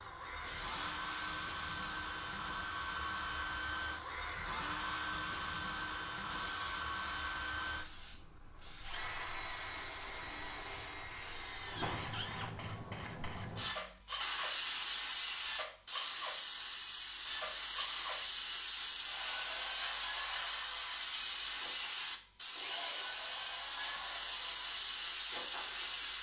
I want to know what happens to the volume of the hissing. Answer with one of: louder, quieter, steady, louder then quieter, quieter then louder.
louder.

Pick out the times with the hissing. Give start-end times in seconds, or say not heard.
0.4-26.1.